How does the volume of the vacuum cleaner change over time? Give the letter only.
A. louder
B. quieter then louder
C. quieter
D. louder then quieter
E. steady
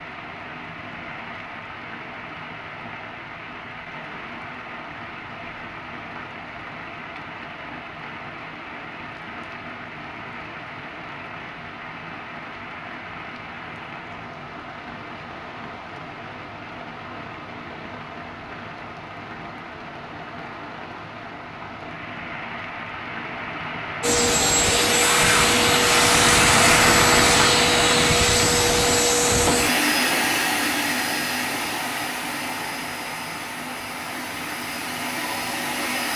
C.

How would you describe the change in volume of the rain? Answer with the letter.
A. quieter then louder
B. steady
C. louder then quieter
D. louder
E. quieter
C.